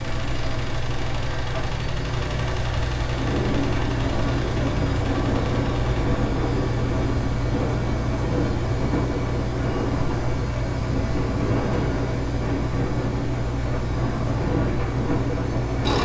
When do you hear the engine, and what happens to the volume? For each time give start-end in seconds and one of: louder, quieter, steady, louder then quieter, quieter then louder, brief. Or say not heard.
0.0-15.9 steady.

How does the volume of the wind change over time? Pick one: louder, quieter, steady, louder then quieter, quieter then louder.
steady.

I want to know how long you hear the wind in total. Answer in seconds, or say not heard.
13 s.